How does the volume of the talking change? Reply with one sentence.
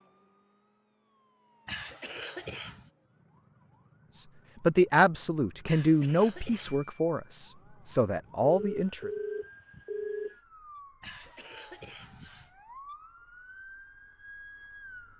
The loudness of the talking goes down, then up.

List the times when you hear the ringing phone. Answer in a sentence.
You can hear the ringing phone from 8.4 to 10.3 s.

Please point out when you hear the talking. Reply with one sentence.
The talking can be heard from 4.2 to 9.1 s.